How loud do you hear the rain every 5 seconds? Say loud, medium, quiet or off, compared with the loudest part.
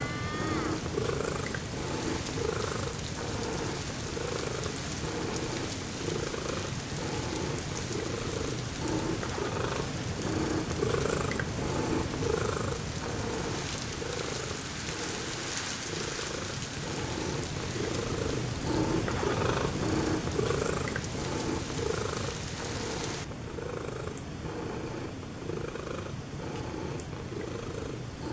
loud, loud, loud, loud, loud, off.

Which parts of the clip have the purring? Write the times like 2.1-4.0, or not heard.
0.0-28.2.